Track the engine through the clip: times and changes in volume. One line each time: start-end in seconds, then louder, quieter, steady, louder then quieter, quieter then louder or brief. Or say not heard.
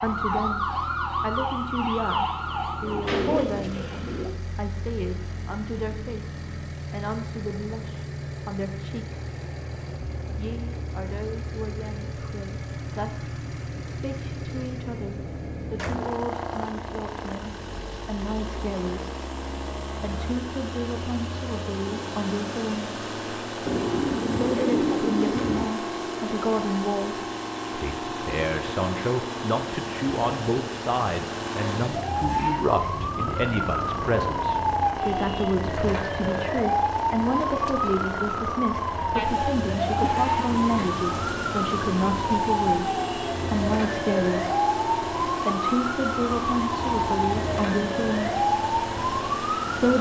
0.0-49.9 louder.